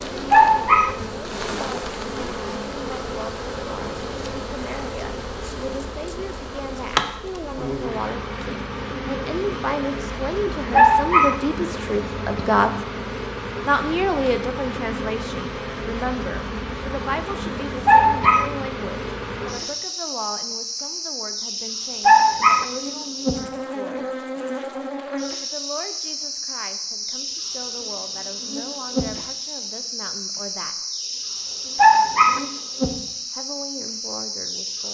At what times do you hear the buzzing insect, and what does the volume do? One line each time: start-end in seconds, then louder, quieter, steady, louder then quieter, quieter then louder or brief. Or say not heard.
0.0-34.8 steady.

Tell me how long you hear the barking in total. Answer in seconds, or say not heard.
3 s.